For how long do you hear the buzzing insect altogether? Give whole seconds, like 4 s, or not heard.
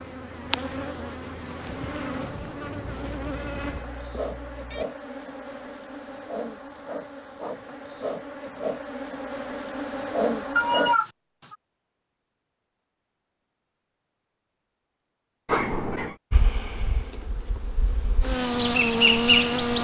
14 s.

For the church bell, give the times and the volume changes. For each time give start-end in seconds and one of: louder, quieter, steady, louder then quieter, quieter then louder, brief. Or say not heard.
not heard.